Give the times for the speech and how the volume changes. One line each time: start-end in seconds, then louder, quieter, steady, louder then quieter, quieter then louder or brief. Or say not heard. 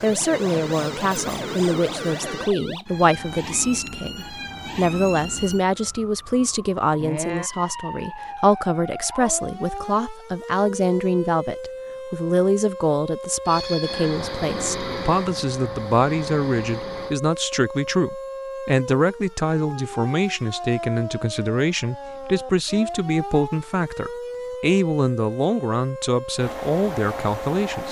0.0-27.8 steady.